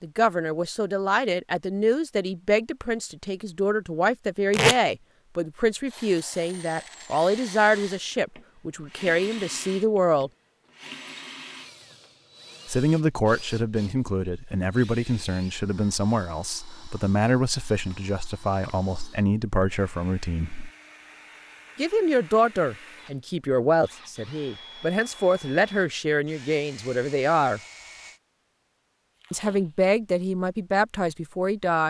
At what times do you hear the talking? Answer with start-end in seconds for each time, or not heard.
0.0-10.3, 12.7-20.7, 21.8-27.6, 29.3-31.8.